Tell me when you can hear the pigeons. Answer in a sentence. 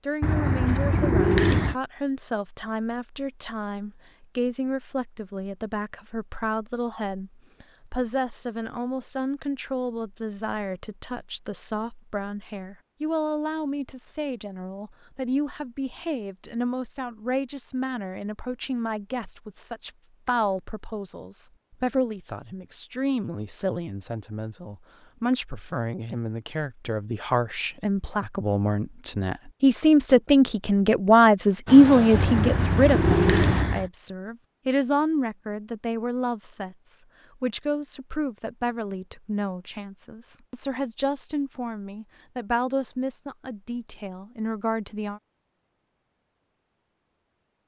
The pigeons can be heard from 0.2 to 1.8 s and from 32.1 to 33.9 s.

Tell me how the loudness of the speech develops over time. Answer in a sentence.
The loudness of the speech goes up, then down.